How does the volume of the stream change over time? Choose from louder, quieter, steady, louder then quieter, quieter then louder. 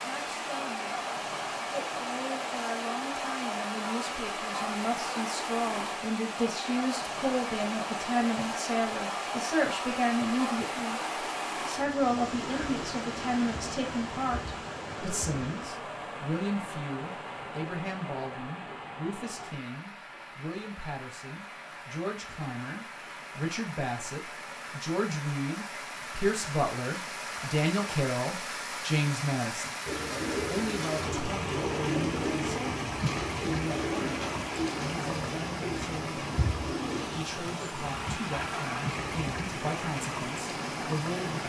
quieter then louder.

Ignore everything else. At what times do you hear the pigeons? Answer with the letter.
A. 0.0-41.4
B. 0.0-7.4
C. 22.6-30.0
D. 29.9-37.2
D.